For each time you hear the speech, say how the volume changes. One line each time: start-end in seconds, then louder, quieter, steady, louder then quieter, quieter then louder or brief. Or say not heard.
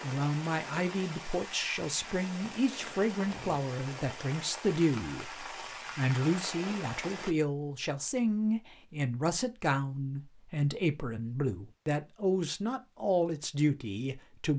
0.0-14.5 steady.